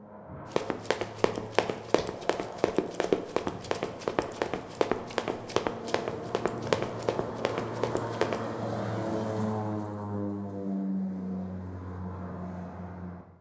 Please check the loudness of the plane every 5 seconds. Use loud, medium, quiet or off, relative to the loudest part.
medium, loud, loud.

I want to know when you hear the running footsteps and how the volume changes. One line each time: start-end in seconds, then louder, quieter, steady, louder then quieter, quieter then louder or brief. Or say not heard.
0.5-8.4 steady.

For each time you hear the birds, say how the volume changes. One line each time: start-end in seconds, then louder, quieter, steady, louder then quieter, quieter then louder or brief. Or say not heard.
not heard.